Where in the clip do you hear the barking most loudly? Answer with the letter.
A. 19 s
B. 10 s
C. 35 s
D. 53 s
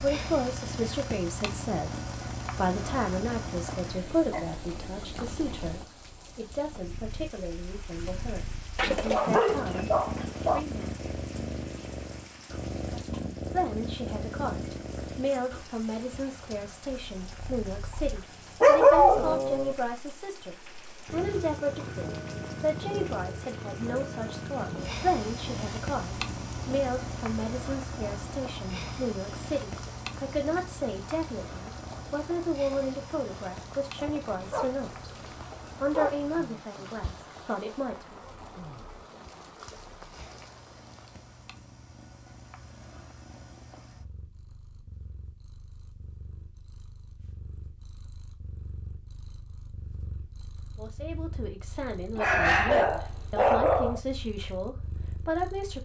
A.